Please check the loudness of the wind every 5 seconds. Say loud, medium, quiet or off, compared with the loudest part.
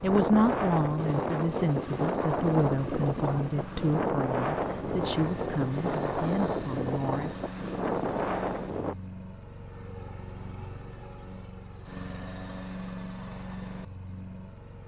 loud, loud, off.